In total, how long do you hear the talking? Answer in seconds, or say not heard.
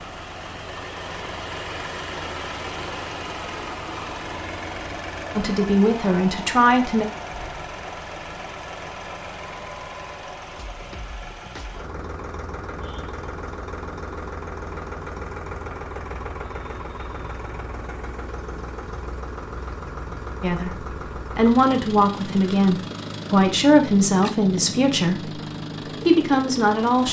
8 s.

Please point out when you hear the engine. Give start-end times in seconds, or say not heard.
0.0-27.0.